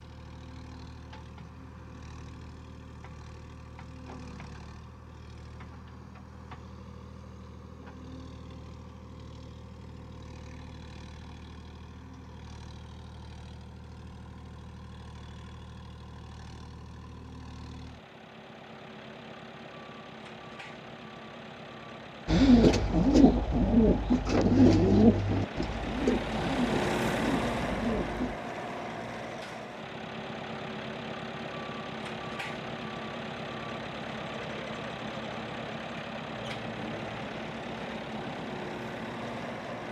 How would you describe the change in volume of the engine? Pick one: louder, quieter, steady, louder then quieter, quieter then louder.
louder.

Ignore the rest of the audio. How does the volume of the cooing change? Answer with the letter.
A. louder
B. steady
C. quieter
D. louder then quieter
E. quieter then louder
C.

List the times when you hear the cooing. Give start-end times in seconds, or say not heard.
22.2-28.4.